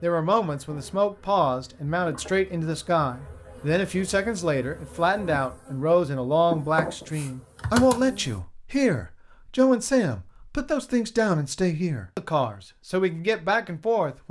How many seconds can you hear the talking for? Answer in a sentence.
The talking can be heard for 14 seconds in total.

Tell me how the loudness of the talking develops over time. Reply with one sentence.
The loudness of the talking stays about the same.